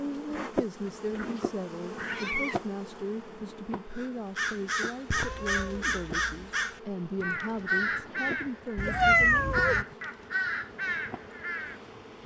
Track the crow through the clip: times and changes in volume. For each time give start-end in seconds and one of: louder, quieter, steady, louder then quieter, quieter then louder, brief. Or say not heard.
3.9-11.8 steady.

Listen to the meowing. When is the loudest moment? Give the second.
9 s.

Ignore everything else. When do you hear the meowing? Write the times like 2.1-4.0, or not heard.
1.2-2.5, 5.1-6.5, 8.8-9.8.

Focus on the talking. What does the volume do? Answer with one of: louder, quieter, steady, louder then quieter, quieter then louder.
steady.